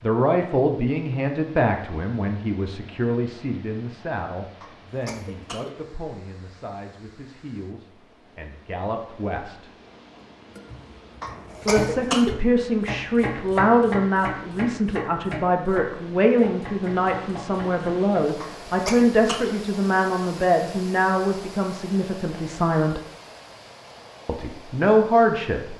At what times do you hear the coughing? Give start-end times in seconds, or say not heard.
4.6-5.8, 11.2-12.3, 18.4-19.6.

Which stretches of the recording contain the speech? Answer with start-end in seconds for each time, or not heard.
0.0-9.7, 11.7-23.0, 24.2-25.7.